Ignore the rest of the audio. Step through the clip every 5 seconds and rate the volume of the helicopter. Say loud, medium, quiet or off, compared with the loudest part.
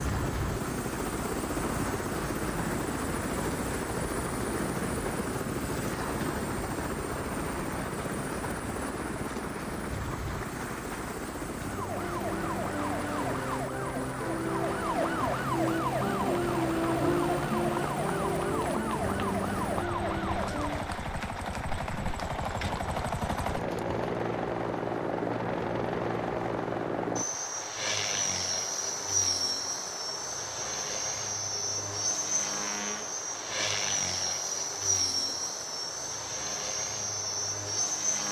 loud, loud, medium, medium, loud, loud, loud, loud.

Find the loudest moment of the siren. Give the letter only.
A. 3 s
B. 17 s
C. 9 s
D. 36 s
B.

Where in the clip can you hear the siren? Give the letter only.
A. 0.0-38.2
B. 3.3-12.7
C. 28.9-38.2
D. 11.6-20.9
D.